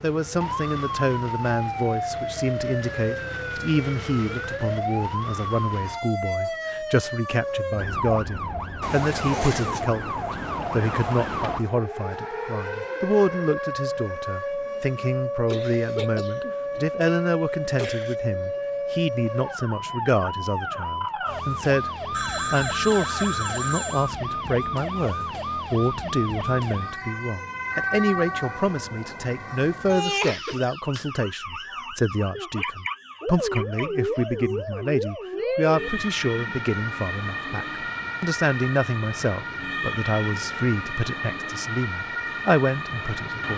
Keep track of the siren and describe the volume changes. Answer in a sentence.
The loudness of the siren stays about the same.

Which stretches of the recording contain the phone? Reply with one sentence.
The phone can be heard from 8.8 to 9.8 s and from 22.1 to 24.1 s.